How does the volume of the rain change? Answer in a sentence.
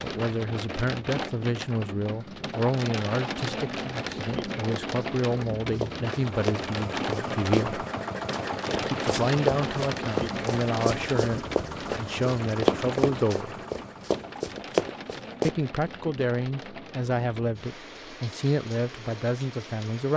The loudness of the rain goes down.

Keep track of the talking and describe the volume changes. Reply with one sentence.
The volume of the talking stays about the same.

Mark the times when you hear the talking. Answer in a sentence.
You can hear the talking from 0.0 to 7.8 s, from 8.8 to 13.6 s and from 15.4 to 20.1 s.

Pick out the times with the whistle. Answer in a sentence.
The whistle can't be heard in this clip.